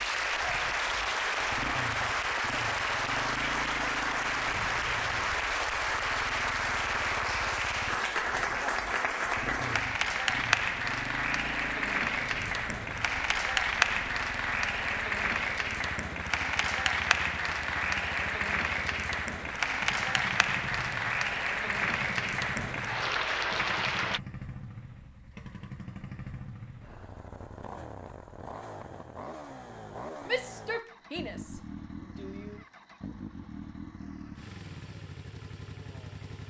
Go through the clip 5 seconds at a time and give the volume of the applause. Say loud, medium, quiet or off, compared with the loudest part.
loud, loud, loud, loud, loud, off, off, off.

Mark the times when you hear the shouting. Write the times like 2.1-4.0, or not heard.
30.2-32.6.